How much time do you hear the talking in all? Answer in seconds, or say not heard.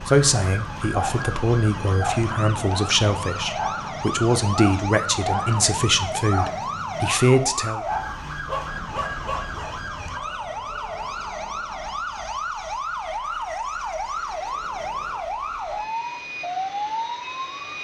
8 s.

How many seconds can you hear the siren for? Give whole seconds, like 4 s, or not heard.
18 s.